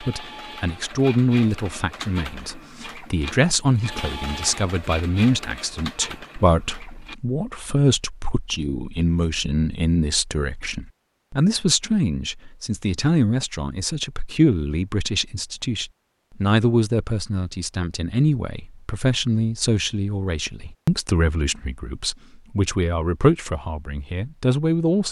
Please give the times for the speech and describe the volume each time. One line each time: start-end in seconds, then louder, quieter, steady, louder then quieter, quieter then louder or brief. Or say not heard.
0.0-25.0 steady.